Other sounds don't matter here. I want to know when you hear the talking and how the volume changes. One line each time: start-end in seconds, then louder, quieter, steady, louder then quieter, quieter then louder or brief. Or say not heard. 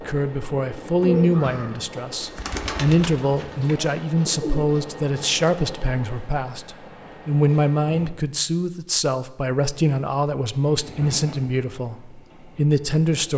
0.0-13.3 steady.